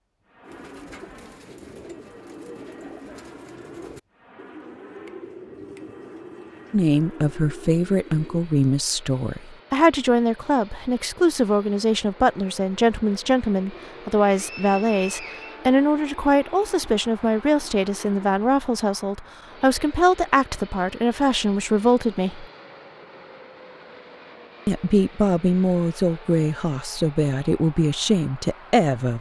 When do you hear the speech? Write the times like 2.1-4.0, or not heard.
6.7-22.4, 24.6-29.1.